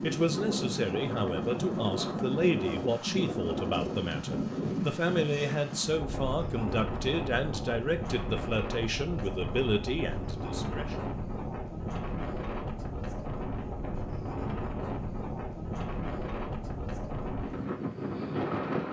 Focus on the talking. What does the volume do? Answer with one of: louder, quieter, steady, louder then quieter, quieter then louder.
steady.